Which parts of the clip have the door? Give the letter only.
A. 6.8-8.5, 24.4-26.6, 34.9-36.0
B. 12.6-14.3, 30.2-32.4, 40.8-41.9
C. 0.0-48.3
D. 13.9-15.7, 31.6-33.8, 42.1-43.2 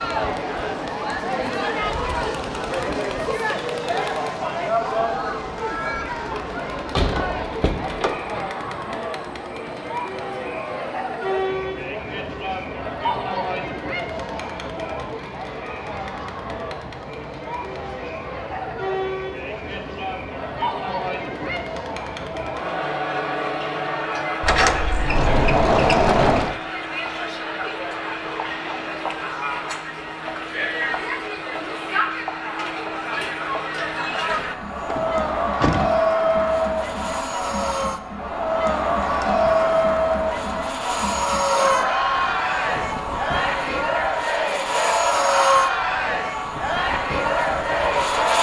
A.